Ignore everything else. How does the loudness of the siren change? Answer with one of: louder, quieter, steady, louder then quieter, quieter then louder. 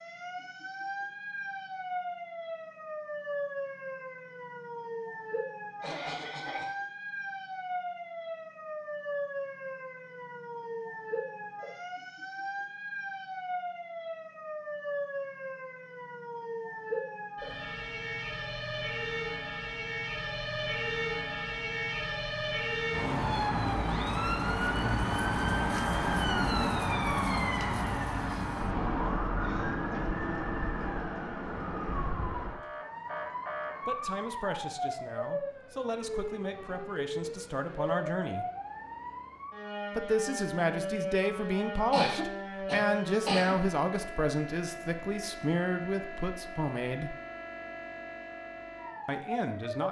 louder then quieter.